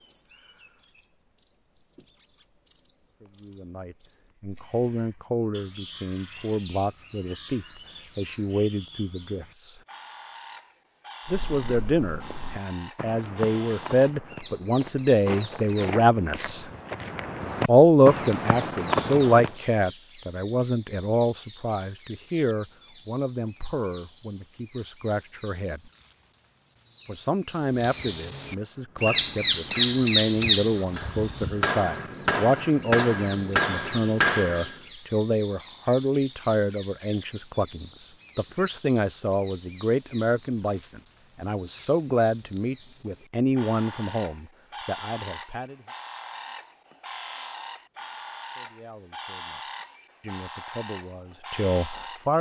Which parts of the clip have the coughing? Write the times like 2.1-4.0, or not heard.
not heard.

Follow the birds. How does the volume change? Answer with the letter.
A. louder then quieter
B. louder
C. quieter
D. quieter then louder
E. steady
A.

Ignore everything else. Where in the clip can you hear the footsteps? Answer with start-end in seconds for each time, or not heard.
11.2-19.6.